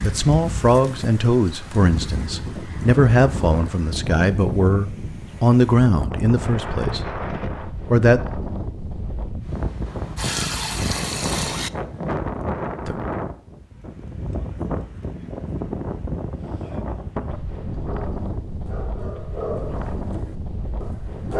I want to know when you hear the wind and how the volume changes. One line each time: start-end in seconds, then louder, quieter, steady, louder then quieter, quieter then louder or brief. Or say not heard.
0.0-21.3 steady.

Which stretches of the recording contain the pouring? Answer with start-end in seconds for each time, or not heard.
9.8-11.7.